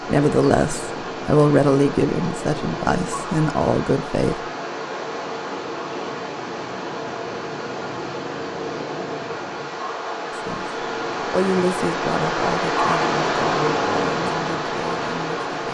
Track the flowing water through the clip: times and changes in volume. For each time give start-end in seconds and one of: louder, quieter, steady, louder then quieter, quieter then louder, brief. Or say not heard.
0.0-15.6 louder.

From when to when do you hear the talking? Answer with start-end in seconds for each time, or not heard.
0.1-4.5, 10.3-15.6.